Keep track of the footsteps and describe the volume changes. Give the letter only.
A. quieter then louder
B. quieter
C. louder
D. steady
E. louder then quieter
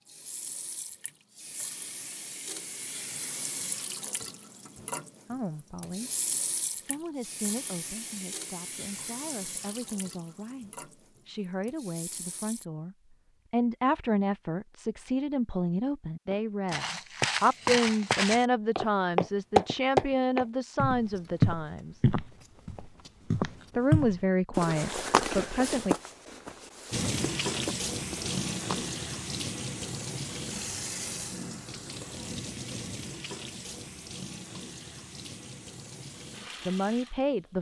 E.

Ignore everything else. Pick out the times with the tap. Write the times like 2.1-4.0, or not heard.
0.1-12.7, 26.9-37.5.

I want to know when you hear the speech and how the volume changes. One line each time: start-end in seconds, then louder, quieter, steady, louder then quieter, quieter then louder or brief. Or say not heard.
5.2-6.1 brief
6.8-21.9 louder
23.8-25.9 brief
36.6-37.5 brief.